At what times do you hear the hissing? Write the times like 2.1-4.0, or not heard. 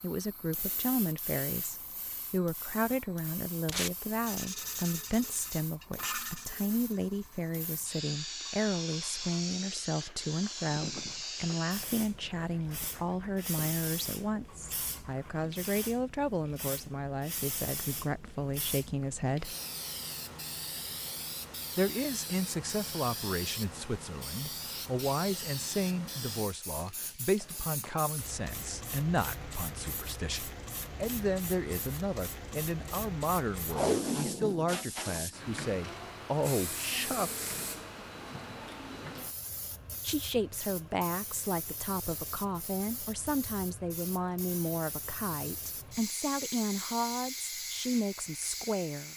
0.0-49.1.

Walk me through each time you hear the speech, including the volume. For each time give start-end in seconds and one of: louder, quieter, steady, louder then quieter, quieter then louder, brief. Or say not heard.
0.0-19.6 steady
21.8-37.5 steady
40.0-49.1 steady.